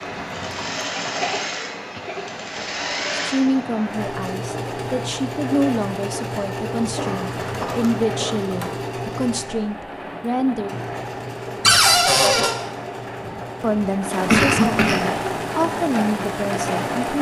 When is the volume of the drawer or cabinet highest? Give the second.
12 s.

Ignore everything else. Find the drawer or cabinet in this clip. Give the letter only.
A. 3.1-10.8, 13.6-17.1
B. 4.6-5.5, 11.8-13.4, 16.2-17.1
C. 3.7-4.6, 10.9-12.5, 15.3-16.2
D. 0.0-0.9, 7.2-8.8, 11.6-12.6
D.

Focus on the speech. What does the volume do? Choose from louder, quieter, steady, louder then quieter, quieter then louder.
steady.